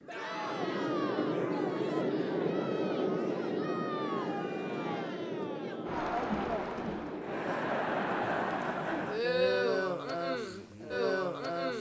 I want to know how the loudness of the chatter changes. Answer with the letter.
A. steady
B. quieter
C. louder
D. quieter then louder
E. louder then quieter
C.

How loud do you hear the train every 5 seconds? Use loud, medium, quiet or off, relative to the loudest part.
loud, medium, off.